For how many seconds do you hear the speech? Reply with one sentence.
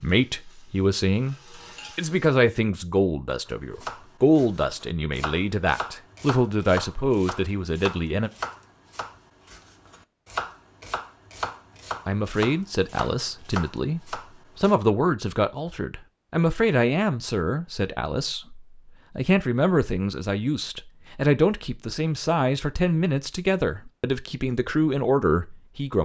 You can hear the speech for 22 seconds altogether.